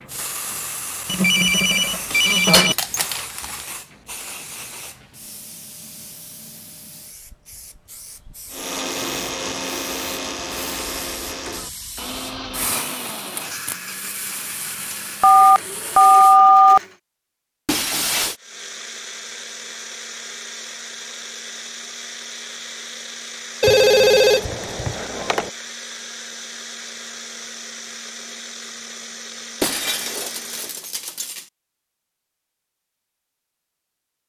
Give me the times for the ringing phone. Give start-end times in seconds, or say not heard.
1.1-2.8, 15.2-16.8, 23.6-25.5.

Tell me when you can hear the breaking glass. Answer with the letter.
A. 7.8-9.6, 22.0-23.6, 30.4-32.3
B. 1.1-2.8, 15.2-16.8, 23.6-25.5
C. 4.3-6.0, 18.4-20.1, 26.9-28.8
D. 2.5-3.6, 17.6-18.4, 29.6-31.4
D.